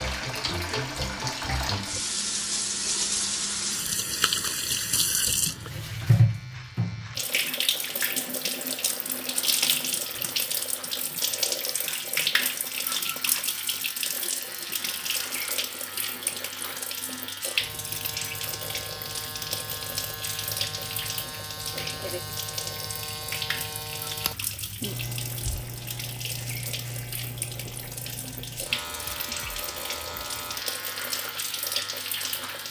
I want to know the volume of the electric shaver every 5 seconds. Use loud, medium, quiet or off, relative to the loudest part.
medium, medium, medium, loud, loud, loud, loud.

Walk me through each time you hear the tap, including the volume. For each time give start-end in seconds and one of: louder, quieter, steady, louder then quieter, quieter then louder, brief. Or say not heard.
0.0-32.6 quieter.